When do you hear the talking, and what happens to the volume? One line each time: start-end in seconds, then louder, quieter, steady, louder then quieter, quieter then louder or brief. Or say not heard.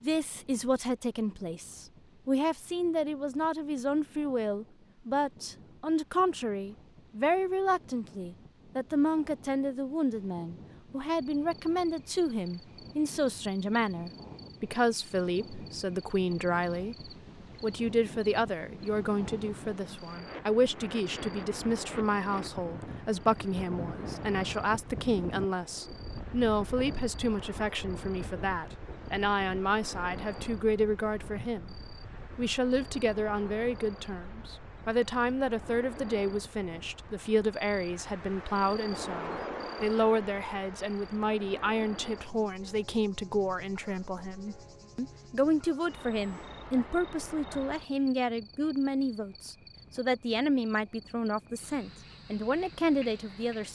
0.0-53.6 steady.